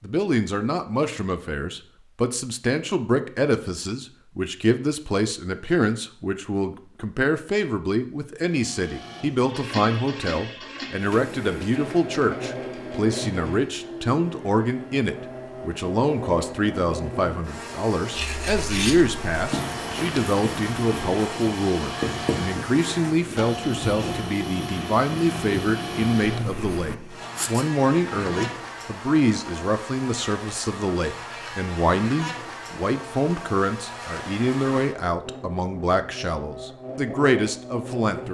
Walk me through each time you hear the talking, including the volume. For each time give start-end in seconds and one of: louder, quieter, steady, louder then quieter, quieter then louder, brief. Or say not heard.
0.0-38.2 steady.